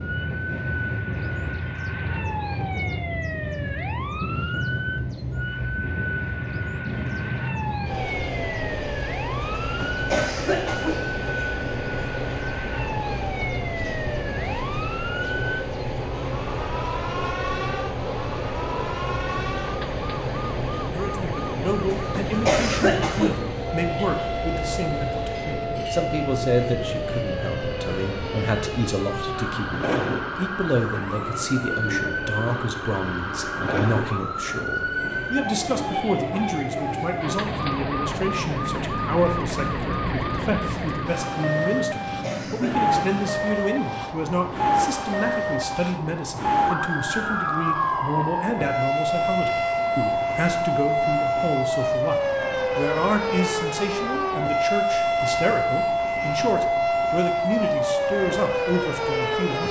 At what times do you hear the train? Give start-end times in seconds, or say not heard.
0.0-59.6.